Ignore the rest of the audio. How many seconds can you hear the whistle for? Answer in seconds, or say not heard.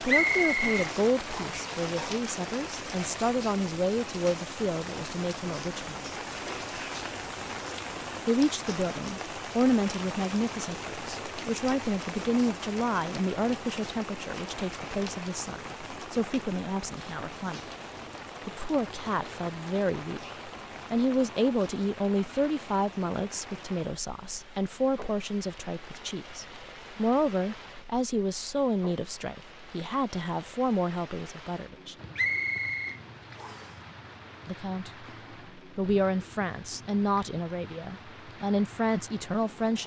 3 s.